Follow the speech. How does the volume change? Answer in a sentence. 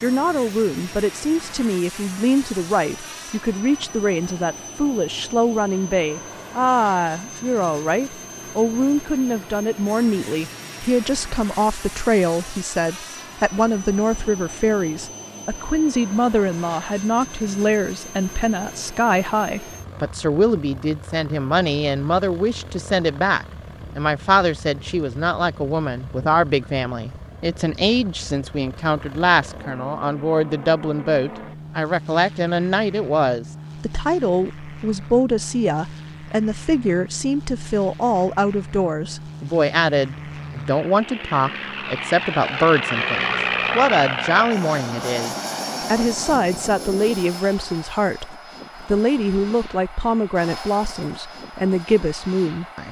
The volume of the speech stays about the same.